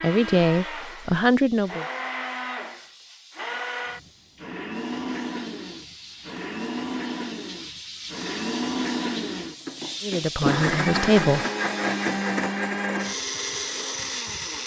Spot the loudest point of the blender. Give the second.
11 s.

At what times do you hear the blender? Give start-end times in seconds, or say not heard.
0.0-14.6.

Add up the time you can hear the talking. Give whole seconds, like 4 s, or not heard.
3 s.